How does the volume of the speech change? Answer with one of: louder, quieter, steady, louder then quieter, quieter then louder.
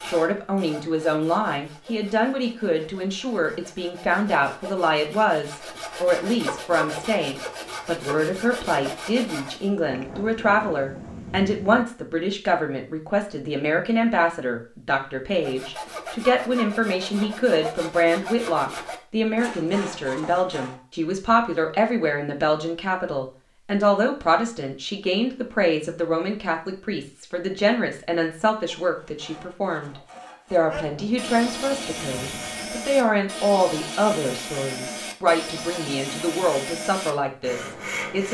steady.